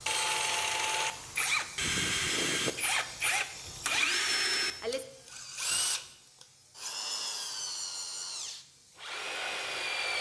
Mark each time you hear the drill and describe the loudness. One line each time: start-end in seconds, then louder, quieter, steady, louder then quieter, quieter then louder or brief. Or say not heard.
0.1-10.1 quieter.